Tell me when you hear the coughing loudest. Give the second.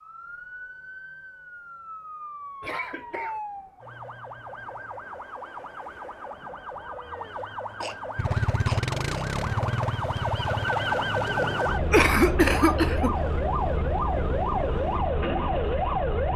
12 s.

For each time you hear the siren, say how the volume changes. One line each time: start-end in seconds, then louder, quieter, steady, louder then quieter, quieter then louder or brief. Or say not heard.
0.0-16.3 louder.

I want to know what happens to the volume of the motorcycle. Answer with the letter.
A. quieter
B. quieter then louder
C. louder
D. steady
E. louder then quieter
A.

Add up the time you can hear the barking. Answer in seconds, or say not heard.
not heard.